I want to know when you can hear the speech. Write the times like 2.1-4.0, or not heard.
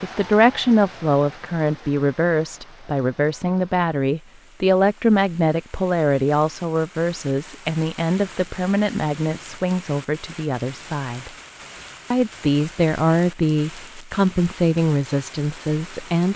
0.0-11.3, 12.1-16.3.